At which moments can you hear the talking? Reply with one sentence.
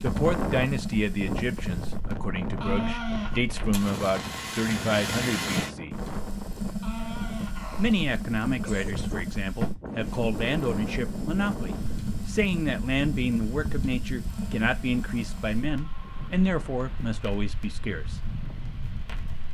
The talking can be heard from 0.0 to 6.0 s and from 7.8 to 18.2 s.